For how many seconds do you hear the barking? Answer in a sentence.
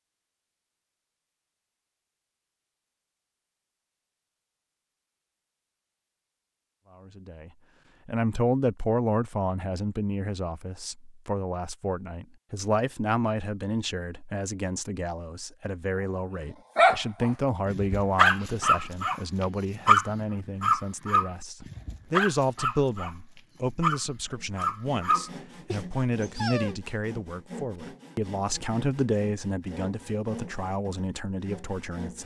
The barking can be heard for 10 seconds in total.